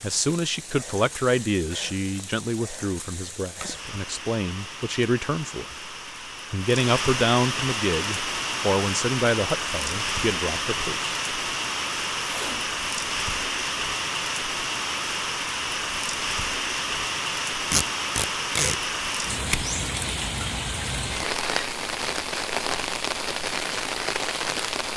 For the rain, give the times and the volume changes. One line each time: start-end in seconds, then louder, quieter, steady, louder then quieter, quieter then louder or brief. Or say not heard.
0.0-24.9 louder.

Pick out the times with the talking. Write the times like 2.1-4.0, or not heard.
0.0-5.8, 6.5-11.2.